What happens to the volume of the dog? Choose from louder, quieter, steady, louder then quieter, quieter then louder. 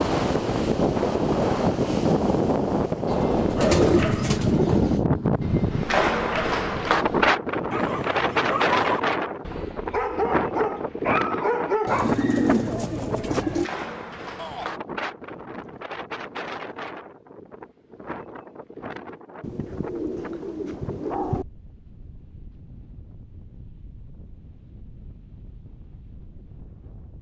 louder.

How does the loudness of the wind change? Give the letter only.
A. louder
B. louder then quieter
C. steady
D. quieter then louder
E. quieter
E.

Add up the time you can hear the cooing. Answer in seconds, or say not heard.
6 s.